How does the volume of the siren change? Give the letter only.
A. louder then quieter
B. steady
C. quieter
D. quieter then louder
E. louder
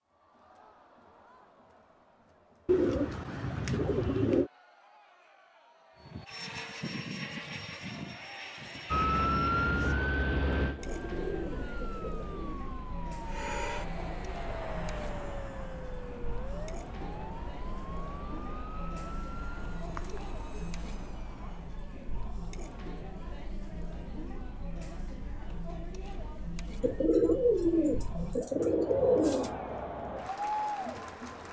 C.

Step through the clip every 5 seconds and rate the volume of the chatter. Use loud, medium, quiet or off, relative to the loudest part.
quiet, quiet, medium, medium, medium, medium, loud.